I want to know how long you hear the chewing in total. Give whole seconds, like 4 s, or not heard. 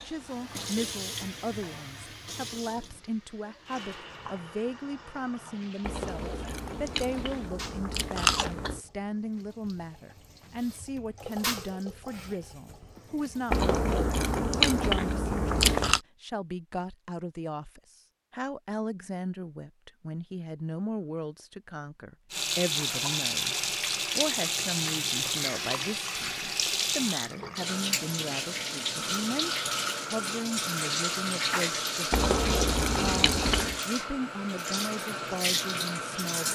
7 s.